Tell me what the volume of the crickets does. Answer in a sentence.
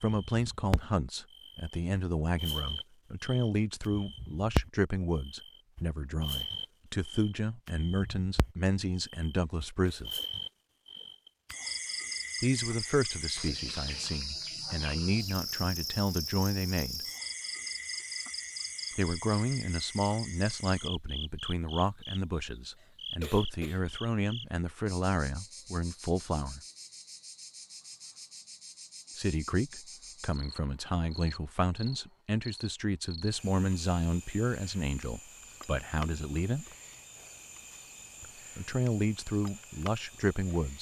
The volume of the crickets goes down.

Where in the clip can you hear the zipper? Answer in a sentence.
You can't hear the zipper here.